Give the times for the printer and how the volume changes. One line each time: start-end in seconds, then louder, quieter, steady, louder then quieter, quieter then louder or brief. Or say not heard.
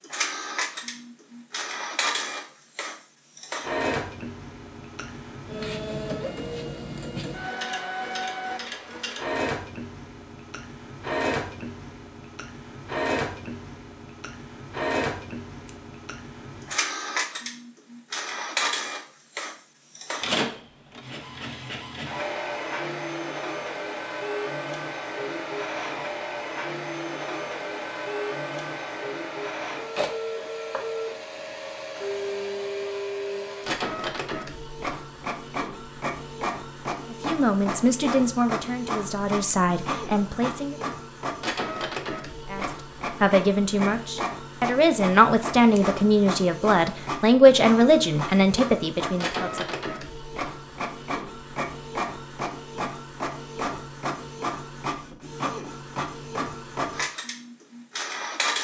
0.0-58.6 steady.